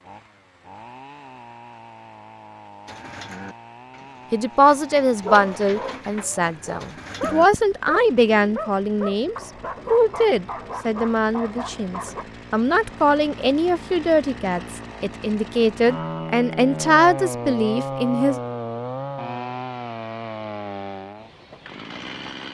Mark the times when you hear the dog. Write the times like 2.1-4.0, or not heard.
5.2-12.2.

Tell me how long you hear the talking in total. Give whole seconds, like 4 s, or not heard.
14 s.